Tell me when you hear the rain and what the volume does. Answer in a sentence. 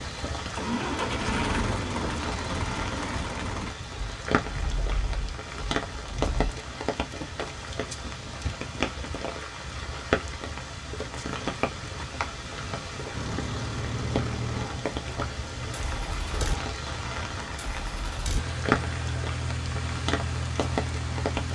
The rain can be heard from 0.0 to 21.4 s, at a steady volume.